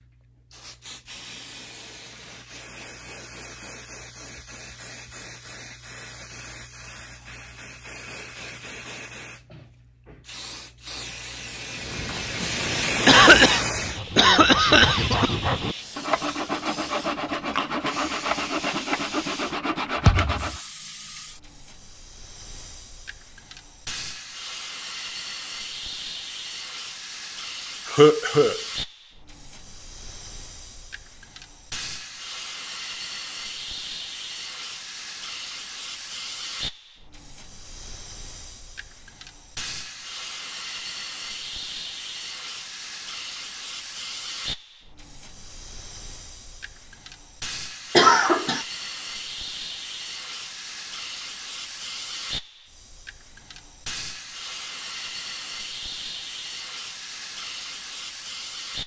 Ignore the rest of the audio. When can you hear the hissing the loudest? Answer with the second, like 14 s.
13 s.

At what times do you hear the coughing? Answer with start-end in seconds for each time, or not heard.
13.1-15.3, 27.9-28.6, 48.0-48.6.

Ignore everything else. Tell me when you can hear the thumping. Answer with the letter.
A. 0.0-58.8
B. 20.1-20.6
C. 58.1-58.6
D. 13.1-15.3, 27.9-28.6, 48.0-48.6
B.